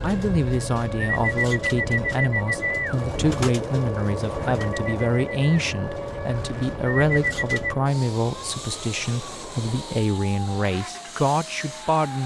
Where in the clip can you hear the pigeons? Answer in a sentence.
The pigeons can be heard from 0.0 to 7.8 s.